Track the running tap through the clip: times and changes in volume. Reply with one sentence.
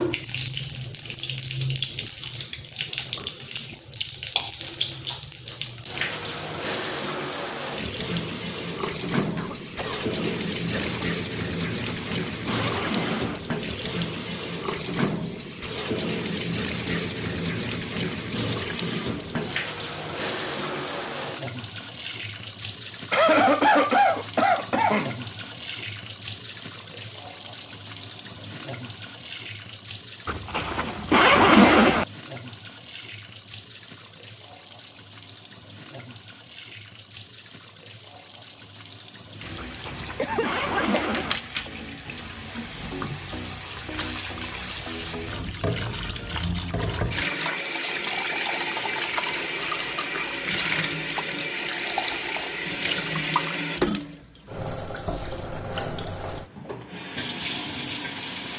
The running tap can be heard from 0.0 to 58.5 s, getting quieter then louder.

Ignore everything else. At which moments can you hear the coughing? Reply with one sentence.
You can hear the coughing from 9.3 to 11.2 s, from 23.1 to 25.1 s and from 40.1 to 40.8 s.